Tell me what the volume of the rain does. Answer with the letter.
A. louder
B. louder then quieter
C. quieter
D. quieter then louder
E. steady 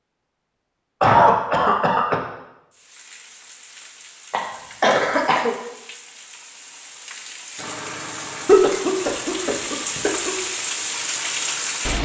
A.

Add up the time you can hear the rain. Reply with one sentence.
The rain can be heard for 9 seconds in total.